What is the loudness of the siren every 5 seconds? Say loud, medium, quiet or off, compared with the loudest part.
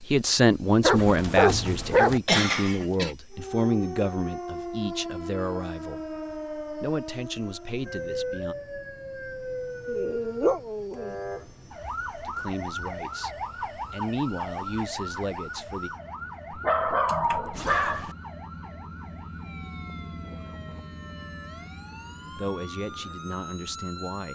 loud, loud, loud, medium, medium.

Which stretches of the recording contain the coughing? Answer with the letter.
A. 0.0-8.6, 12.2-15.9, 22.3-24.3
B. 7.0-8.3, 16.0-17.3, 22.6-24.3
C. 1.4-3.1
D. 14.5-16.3
C.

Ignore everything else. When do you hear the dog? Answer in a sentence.
The dog can be heard from 0.8 to 2.2 s, from 9.8 to 11.2 s and from 16.5 to 18.1 s.